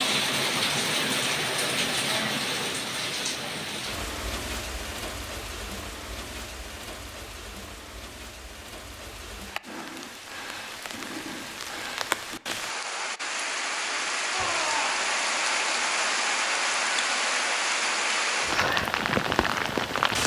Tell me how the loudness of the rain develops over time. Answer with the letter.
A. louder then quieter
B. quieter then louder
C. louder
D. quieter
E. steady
B.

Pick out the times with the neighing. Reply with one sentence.
You can hear the neighing from 14.3 to 14.9 s.